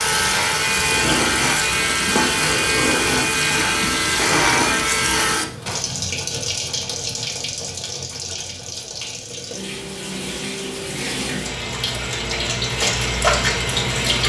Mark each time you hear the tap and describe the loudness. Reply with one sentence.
You can hear the tap from 0.0 to 14.2 s, getting quieter then louder.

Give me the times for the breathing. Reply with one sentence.
The breathing can't be heard in this clip.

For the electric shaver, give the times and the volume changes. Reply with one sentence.
The electric shaver can be heard from 0.0 to 5.5 s, at a steady volume.